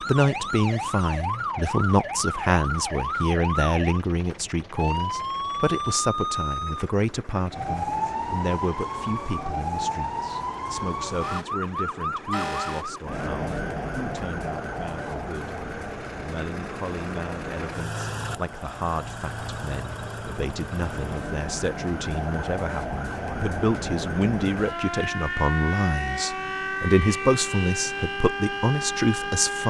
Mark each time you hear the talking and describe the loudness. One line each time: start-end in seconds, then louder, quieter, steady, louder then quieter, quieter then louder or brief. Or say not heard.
0.1-15.6 quieter
16.1-29.6 louder.